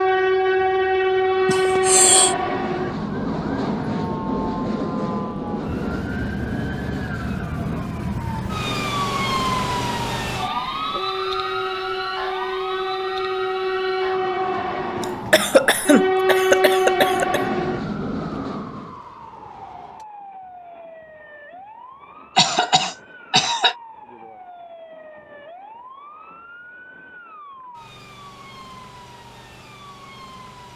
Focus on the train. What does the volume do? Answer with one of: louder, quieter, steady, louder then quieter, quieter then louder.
quieter then louder.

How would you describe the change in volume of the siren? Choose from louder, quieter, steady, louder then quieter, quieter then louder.
louder then quieter.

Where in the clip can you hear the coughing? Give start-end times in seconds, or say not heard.
1.4-2.4, 15.0-17.4, 22.4-23.8.